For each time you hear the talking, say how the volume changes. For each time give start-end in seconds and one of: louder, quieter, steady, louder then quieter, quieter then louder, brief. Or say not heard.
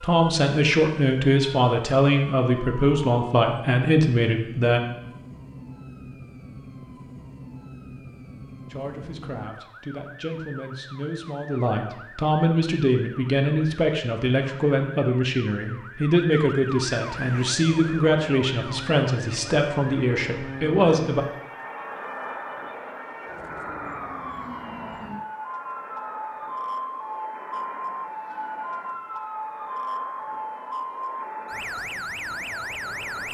0.0-4.8 steady
8.7-21.2 louder.